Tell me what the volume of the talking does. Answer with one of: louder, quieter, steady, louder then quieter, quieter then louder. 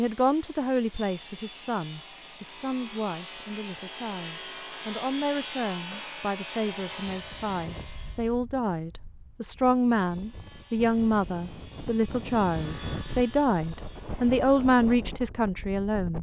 louder.